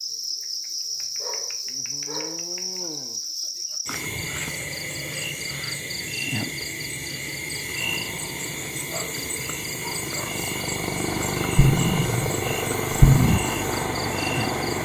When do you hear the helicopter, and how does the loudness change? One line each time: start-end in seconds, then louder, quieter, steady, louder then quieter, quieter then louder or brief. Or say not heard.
7.8-14.8 louder.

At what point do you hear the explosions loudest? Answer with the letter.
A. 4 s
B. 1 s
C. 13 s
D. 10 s
C.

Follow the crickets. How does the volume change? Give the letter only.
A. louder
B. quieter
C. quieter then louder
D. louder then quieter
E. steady
E.